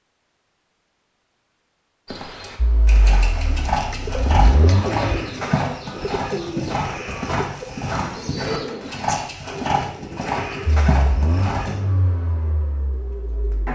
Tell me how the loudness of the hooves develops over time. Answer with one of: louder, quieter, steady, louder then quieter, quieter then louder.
steady.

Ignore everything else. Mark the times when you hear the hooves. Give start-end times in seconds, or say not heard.
2.0-11.8.